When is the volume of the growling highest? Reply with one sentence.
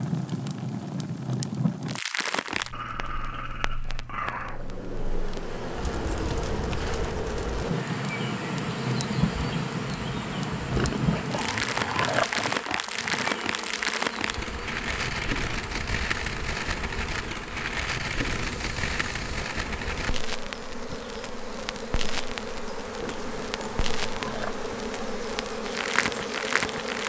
The volume of the growling peaks at 12 seconds.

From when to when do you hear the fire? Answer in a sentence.
You can hear the fire from 0.0 to 27.0 s.